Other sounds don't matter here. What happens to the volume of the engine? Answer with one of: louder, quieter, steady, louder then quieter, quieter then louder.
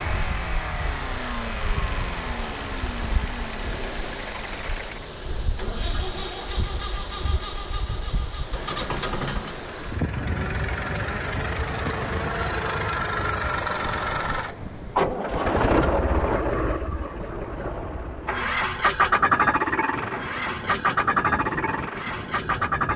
louder.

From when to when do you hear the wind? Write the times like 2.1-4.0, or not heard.
0.0-22.9.